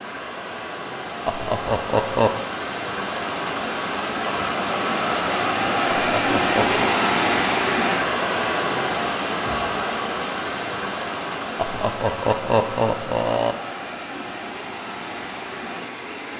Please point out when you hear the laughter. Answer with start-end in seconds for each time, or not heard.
1.2-2.3, 6.1-6.8, 11.6-13.6.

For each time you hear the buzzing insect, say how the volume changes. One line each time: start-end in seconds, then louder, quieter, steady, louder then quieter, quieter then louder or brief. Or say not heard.
not heard.